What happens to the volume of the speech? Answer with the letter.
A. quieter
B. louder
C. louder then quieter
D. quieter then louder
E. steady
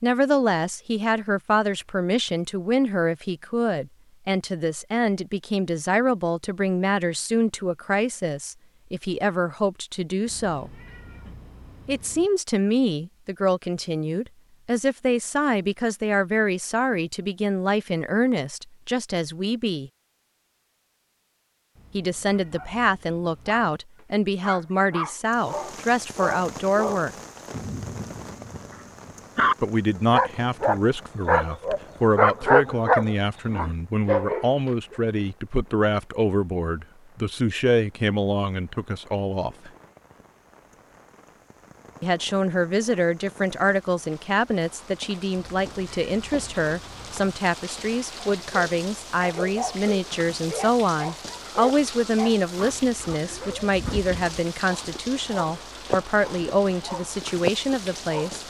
E.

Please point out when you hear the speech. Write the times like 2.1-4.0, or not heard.
0.0-10.7, 11.8-19.9, 21.9-27.1, 29.6-39.7, 42.0-58.4.